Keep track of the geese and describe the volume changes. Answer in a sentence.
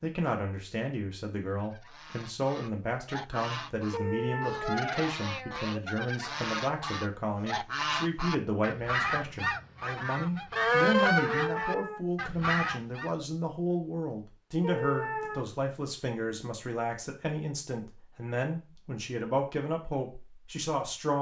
The loudness of the geese goes up.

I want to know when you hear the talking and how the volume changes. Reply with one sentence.
The talking can be heard from 0.0 to 21.1 s, at a steady volume.